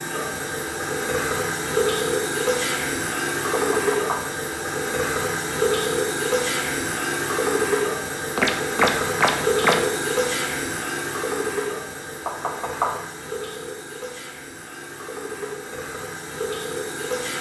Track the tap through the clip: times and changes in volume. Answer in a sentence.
The tap can be heard from 0.0 to 17.3 s, getting quieter.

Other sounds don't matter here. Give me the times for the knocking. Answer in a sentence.
You can hear the knocking from 3.5 to 4.2 s, from 8.3 to 9.8 s and from 12.2 to 12.9 s.